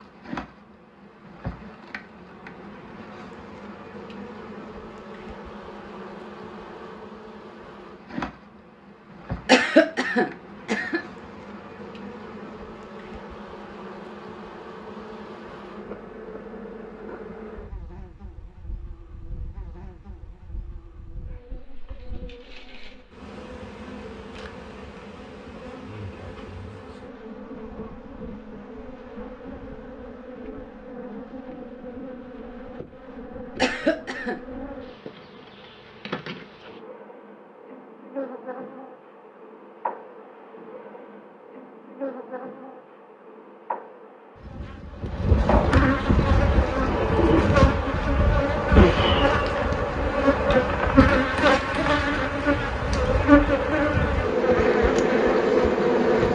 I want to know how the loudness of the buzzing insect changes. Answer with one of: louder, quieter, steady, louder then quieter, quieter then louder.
louder.